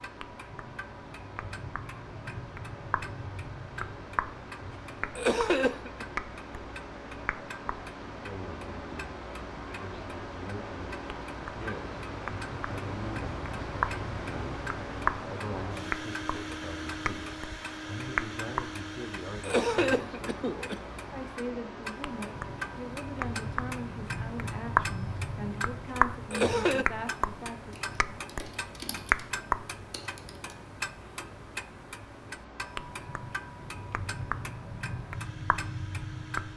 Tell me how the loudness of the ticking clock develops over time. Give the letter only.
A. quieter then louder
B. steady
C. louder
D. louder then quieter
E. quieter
D.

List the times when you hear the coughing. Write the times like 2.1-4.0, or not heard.
5.2-6.0, 19.4-20.8, 26.3-26.9.